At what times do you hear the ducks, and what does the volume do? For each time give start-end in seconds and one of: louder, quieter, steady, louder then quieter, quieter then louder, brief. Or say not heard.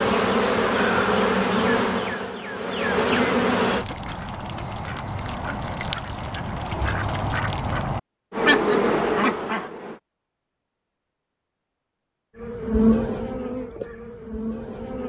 3.8-9.7 louder.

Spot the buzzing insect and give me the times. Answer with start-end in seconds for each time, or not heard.
0.0-3.9, 8.3-10.0, 12.3-15.0.